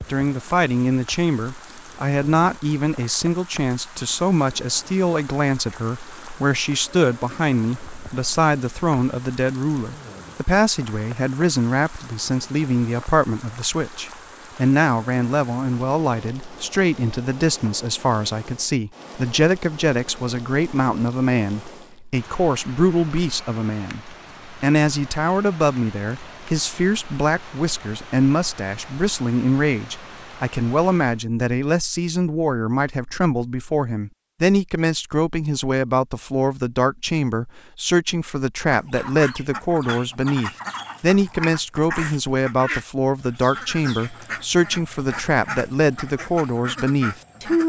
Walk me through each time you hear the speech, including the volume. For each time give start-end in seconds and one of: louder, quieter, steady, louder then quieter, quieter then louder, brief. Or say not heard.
0.1-47.6 steady.